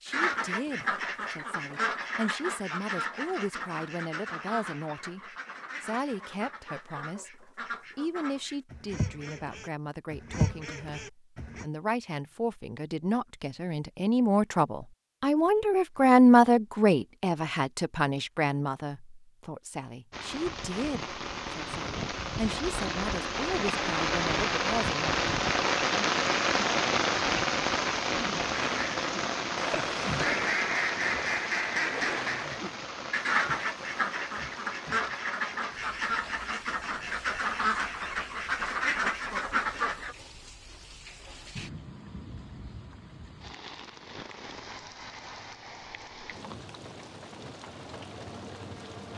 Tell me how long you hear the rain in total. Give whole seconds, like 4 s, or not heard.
29 s.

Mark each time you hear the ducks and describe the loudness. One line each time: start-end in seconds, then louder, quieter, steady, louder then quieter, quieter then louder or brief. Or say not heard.
0.1-11.7 quieter then louder
28.5-40.1 steady.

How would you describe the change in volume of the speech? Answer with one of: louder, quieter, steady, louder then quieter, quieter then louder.
louder then quieter.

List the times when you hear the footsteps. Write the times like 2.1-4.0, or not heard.
not heard.